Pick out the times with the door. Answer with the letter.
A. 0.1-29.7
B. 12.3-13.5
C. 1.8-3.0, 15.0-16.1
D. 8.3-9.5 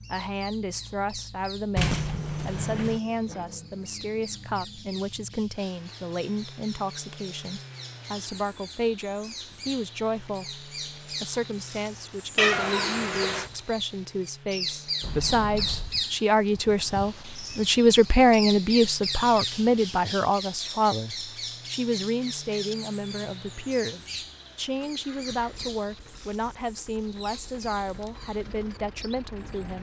C.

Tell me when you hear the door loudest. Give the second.
2 s.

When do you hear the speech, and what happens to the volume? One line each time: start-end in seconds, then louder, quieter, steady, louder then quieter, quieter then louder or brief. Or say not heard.
0.1-29.7 louder then quieter.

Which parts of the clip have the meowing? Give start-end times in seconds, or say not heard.
12.3-13.5.